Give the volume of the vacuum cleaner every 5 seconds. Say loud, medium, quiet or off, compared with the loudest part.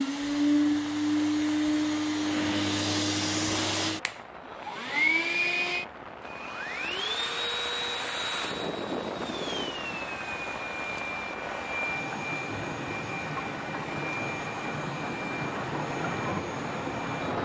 loud, loud, medium, quiet.